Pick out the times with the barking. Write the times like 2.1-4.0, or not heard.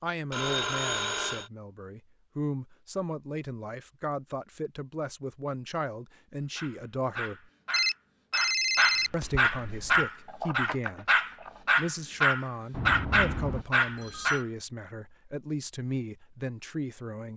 6.5-14.4.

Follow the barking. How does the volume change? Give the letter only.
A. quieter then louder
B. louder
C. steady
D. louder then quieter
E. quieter
B.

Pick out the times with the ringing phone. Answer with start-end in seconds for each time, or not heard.
0.3-1.5, 7.7-9.4, 12.7-14.4.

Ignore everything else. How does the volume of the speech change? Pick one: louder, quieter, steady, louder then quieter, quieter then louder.
steady.